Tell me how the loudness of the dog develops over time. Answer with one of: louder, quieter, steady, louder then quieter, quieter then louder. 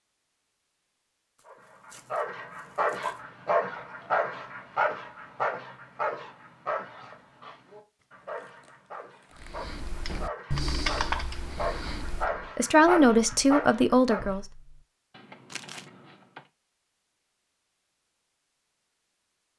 quieter then louder.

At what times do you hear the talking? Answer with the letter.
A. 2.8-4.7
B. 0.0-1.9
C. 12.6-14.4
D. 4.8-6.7
C.